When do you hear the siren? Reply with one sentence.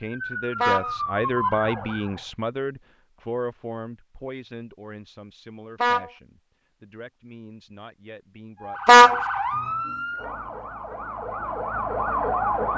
You can hear the siren from 0.0 to 2.2 s and from 8.6 to 12.7 s.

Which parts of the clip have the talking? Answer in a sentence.
You can hear the talking from 0.0 to 9.2 s.